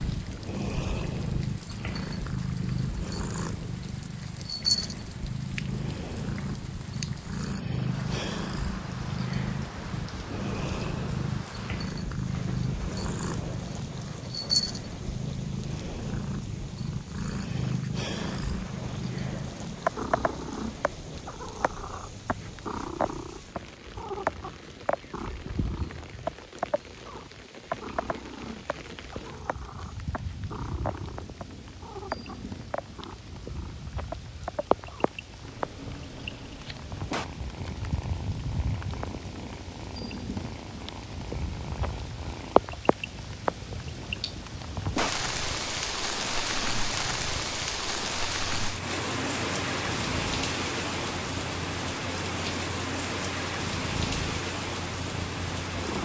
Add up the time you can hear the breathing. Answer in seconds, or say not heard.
not heard.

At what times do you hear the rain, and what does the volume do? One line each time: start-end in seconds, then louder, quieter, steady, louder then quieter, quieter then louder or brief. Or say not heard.
0.0-55.9 louder.